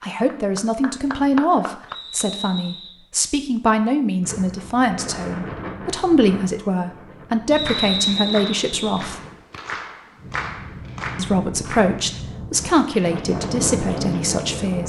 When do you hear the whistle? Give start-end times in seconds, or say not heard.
1.9-3.0, 7.5-9.0.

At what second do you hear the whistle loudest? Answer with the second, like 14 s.
8 s.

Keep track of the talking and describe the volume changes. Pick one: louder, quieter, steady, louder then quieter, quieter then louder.
steady.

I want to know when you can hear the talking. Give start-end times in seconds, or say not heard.
0.0-9.2, 11.2-14.8.